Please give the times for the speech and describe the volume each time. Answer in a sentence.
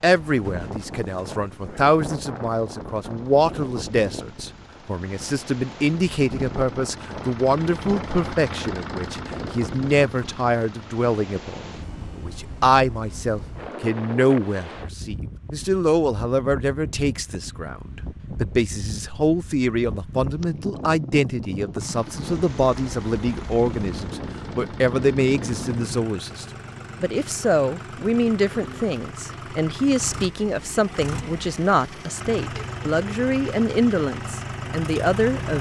You can hear the speech from 0.0 to 35.5 s, at a steady volume.